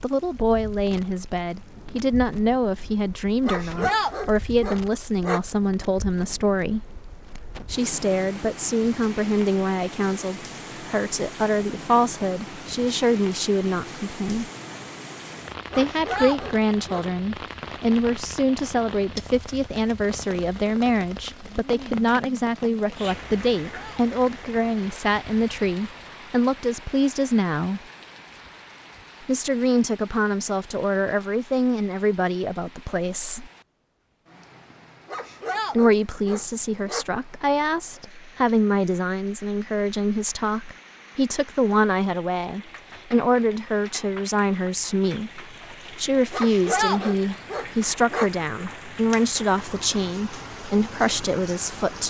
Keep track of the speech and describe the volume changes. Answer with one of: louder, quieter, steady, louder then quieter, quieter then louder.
steady.